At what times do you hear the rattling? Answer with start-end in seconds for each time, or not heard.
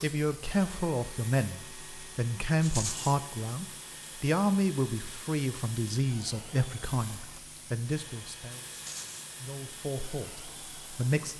2.6-3.2, 8.7-9.3.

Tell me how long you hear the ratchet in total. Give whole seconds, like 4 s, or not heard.
not heard.